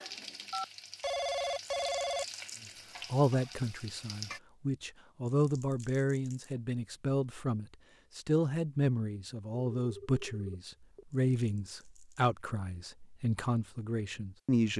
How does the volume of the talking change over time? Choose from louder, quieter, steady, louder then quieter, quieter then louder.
steady.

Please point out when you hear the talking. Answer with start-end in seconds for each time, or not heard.
3.1-14.7.